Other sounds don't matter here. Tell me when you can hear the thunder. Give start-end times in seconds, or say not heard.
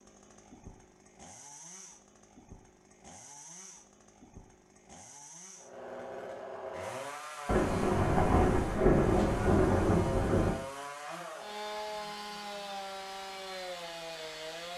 7.5-10.6.